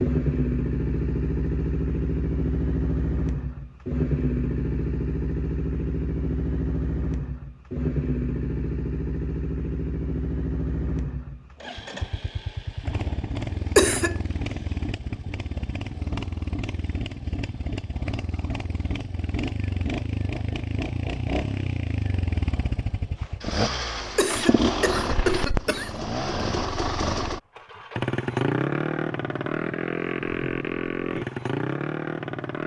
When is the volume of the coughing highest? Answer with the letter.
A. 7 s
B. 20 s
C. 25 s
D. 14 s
D.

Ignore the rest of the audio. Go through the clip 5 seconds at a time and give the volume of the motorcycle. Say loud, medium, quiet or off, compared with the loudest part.
loud, loud, medium, medium, loud, loud, loud.